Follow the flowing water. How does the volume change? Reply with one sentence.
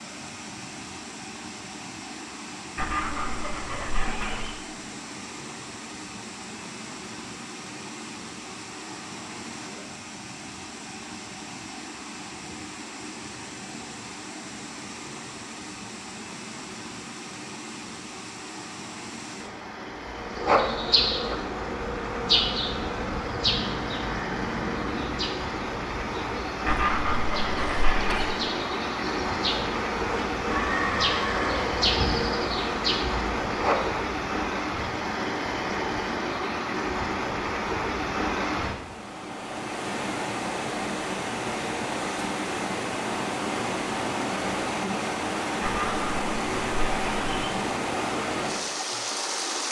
The loudness of the flowing water goes up.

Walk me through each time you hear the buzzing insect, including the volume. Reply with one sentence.
You can hear the buzzing insect from 20.1 to 34.0 s, getting quieter then louder.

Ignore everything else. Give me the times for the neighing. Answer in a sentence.
You can hear the neighing from 30.5 to 31.7 s.